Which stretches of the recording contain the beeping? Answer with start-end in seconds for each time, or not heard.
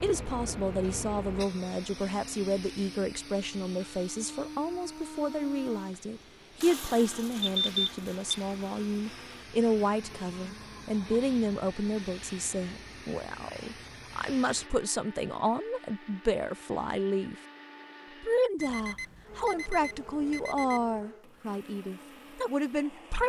7.4-8.4, 18.6-21.0.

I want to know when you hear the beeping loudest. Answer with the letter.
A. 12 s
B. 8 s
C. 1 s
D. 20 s
B.